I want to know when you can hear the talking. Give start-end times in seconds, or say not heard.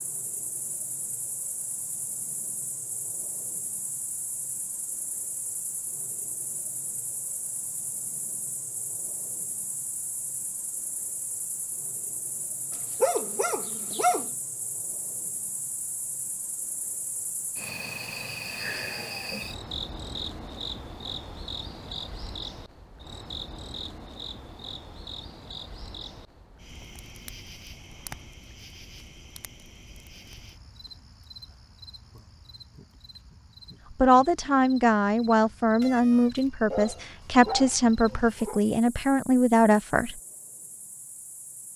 34.0-40.1.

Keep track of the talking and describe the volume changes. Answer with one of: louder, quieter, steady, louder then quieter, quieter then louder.
steady.